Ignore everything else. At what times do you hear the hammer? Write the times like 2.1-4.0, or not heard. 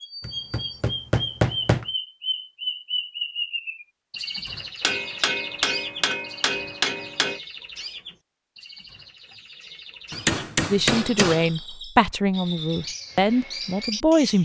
0.2-1.9, 4.8-7.4, 10.1-11.5.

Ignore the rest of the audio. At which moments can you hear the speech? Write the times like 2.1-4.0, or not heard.
10.7-14.4.